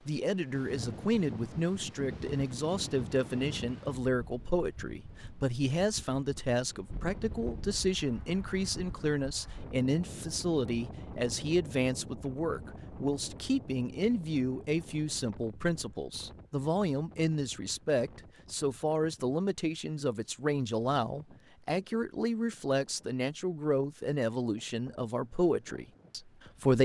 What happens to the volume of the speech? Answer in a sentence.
The volume of the speech stays about the same.